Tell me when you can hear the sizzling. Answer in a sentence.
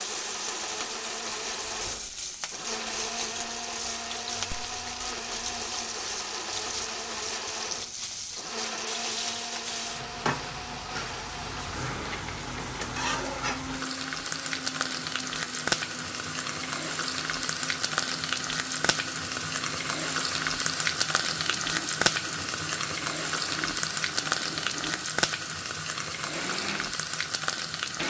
The sizzling can be heard from 0.0 to 28.0 s.